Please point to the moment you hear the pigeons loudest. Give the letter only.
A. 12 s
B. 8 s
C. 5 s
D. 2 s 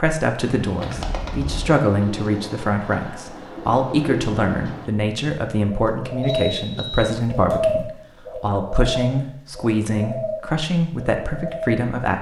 B.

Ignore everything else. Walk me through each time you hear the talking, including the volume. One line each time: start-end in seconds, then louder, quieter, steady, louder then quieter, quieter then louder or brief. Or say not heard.
0.0-12.1 steady.